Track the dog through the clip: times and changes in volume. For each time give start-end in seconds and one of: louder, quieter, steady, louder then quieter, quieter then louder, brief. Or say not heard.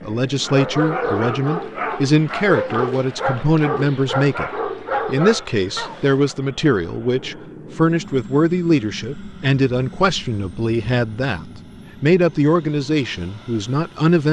0.4-6.3 steady.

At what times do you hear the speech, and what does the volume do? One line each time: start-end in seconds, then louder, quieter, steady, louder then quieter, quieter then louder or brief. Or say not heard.
0.0-14.2 steady.